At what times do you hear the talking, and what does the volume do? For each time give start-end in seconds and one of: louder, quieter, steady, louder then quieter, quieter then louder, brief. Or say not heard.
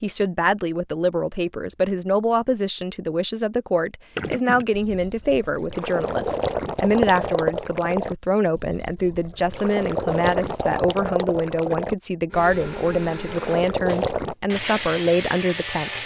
0.0-16.0 steady.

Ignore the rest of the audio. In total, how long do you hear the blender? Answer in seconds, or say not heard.
4 s.